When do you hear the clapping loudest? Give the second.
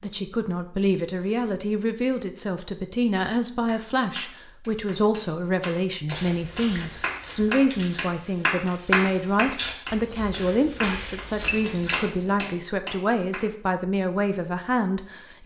9 s.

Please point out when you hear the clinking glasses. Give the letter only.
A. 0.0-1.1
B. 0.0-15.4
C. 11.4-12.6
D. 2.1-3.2
C.